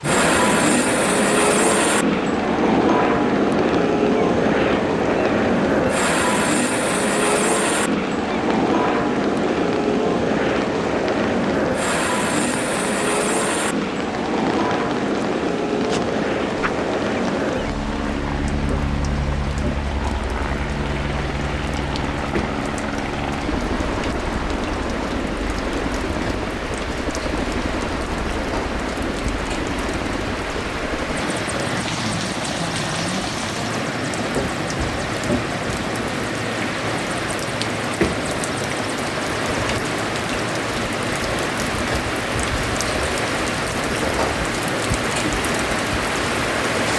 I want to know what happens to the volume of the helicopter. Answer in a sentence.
The loudness of the helicopter goes down.